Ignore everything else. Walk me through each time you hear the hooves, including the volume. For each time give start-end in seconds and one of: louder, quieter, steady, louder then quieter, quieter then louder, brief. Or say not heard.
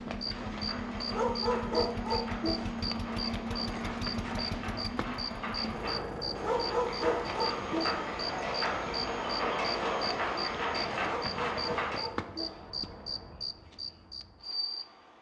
0.3-12.0 louder.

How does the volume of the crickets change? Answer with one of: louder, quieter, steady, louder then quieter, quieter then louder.
steady.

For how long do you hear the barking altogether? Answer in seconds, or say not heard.
5 s.